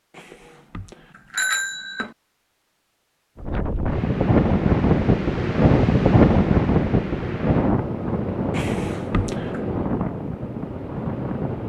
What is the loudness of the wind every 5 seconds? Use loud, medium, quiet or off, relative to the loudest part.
loud, loud, medium.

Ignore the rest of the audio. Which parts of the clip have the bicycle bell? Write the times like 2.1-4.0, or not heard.
0.1-2.1, 8.5-9.6.